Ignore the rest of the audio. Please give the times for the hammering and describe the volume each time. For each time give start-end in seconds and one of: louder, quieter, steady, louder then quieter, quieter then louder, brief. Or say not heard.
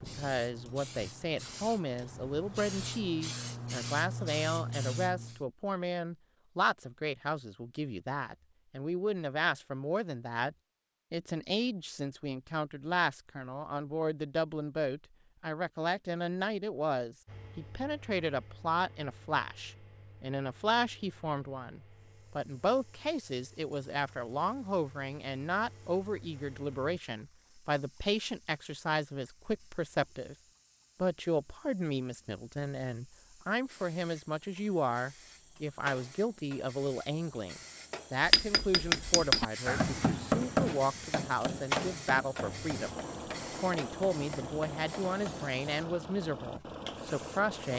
38.2-45.5 quieter.